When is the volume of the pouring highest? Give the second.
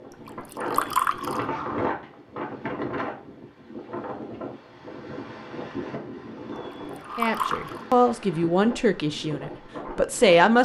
1 s.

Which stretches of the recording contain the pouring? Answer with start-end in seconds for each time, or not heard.
0.2-1.4, 6.7-7.8.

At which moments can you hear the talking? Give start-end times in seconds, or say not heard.
7.2-10.6.